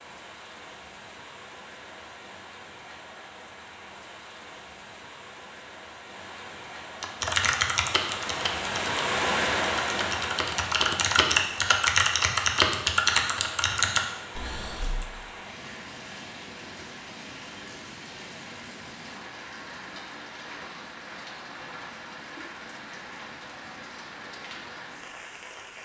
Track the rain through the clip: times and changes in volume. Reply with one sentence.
You can hear the rain from 0.0 to 25.8 s, getting louder then quieter.